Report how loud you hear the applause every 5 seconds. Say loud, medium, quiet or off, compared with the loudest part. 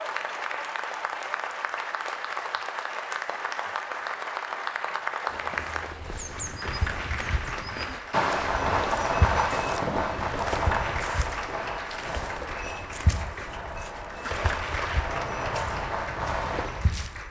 loud, loud, loud, medium.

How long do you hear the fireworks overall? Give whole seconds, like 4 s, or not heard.
9 s.